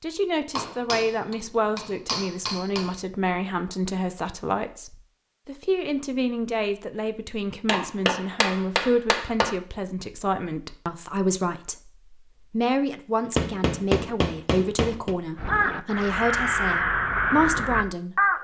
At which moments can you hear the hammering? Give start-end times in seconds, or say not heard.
0.6-3.0, 7.7-9.6, 13.3-15.2.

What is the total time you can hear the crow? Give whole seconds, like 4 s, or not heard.
3 s.